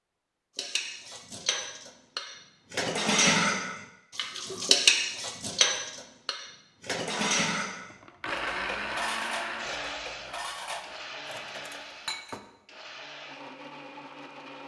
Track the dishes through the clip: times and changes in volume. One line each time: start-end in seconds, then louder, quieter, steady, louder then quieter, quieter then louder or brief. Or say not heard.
0.6-12.4 louder then quieter.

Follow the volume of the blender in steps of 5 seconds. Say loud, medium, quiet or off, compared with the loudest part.
off, loud, medium.